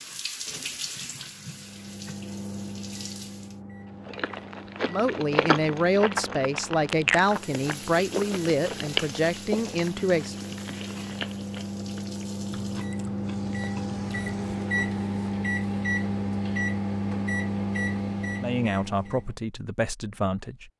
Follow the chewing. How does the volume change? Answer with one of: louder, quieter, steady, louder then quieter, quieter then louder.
quieter.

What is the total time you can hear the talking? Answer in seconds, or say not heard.
8 s.